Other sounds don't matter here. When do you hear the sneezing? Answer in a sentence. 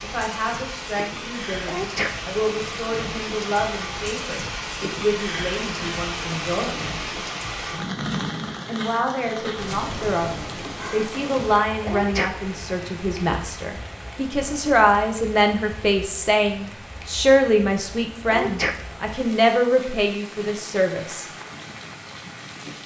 The sneezing can be heard from 1.6 to 2.3 s, from 11.8 to 12.7 s and from 18.2 to 19.1 s.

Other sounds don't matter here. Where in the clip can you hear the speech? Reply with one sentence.
You can hear the speech from 0.0 to 6.8 s and from 8.7 to 21.2 s.